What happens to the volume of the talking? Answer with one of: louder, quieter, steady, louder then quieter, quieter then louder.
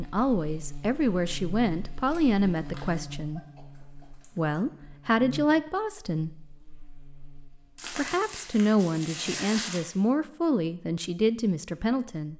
steady.